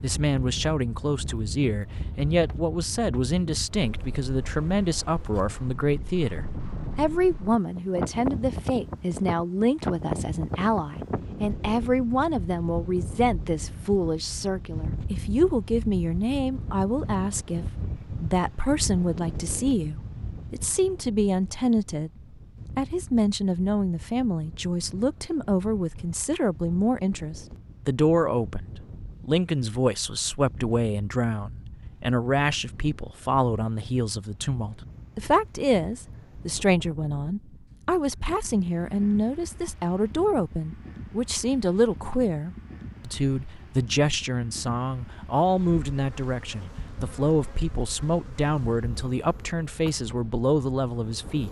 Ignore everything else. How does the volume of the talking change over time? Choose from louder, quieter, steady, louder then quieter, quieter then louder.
steady.